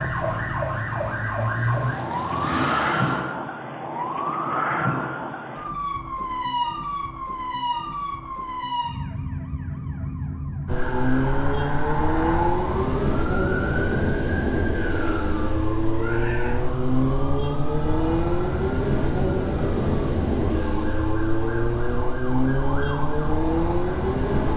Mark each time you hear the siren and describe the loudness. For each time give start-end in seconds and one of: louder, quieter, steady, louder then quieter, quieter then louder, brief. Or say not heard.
0.0-24.5 quieter.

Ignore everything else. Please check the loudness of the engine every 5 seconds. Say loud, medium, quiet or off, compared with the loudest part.
medium, off, loud, loud, loud.